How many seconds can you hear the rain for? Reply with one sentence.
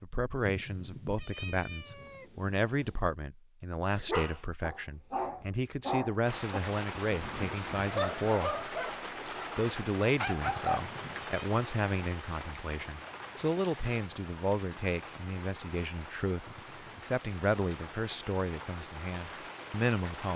The rain can be heard for 14 seconds in total.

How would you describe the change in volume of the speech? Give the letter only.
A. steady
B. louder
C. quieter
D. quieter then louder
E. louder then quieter
A.